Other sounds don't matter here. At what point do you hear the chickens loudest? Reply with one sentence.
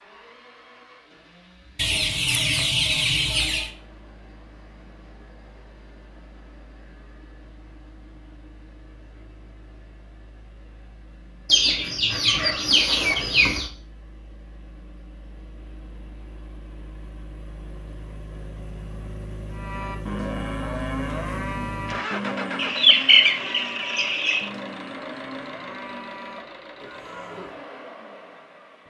The loudest moment of the chickens is at 23 seconds.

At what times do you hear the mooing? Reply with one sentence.
The mooing can be heard from 19.5 to 27.6 s.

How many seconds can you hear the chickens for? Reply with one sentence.
The chickens can be heard for 6 seconds in total.